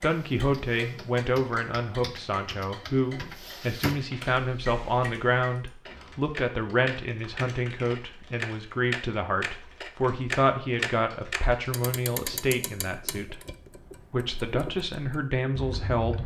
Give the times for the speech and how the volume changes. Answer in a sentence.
You can hear the speech from 0.0 to 13.4 s, at a steady volume; and briefly from 14.1 to 16.2 s.